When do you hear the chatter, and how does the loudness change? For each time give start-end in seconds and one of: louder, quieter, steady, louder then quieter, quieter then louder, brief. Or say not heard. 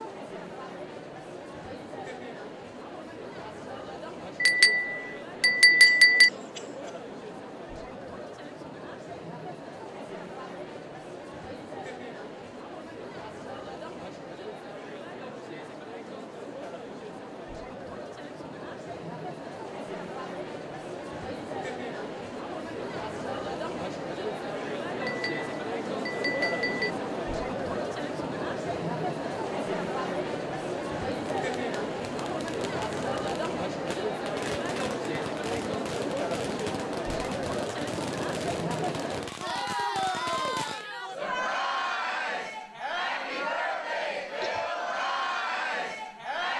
0.0-46.5 louder.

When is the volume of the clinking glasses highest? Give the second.
6 s.